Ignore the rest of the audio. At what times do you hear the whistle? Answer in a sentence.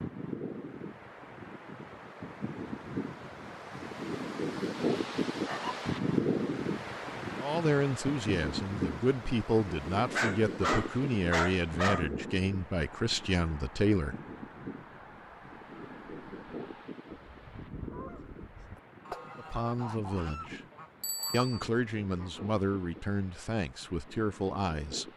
You can't hear the whistle here.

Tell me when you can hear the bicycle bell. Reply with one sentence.
The bicycle bell can be heard from 21.0 to 21.6 s.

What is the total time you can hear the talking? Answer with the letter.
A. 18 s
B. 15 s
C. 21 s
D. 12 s
D.